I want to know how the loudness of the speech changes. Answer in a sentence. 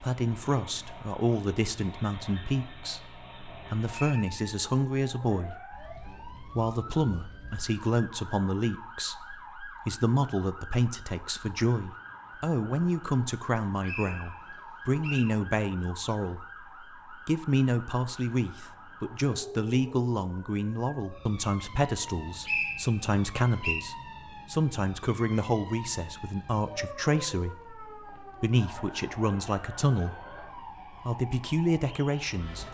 The loudness of the speech stays about the same.